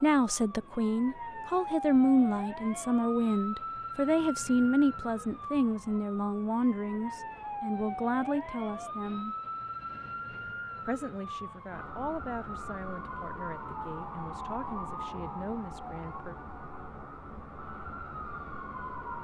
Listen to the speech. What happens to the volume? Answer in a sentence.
The volume of the speech goes down.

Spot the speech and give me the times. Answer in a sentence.
The speech can be heard from 0.0 to 9.3 s and from 10.8 to 16.4 s.